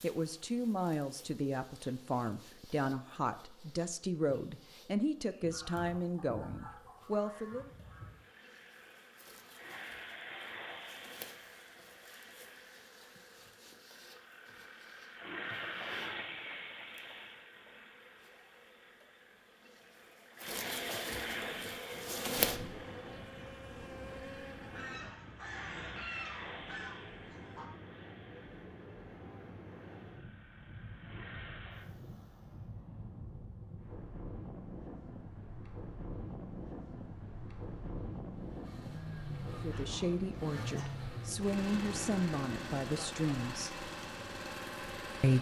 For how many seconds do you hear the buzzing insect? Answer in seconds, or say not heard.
25 s.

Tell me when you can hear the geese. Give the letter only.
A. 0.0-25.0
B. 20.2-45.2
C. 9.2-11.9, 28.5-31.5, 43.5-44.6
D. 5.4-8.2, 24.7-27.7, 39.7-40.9
D.